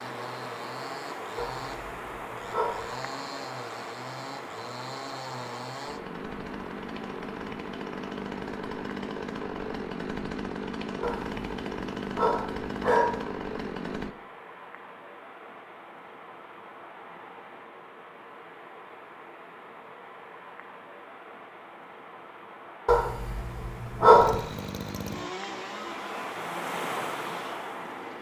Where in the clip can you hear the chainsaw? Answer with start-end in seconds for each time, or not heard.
0.0-14.2, 24.1-28.1.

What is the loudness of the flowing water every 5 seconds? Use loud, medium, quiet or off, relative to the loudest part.
loud, medium, medium, medium, medium, loud.